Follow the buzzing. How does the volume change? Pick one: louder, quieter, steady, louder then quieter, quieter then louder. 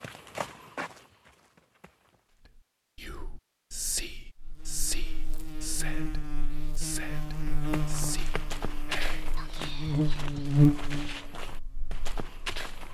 louder.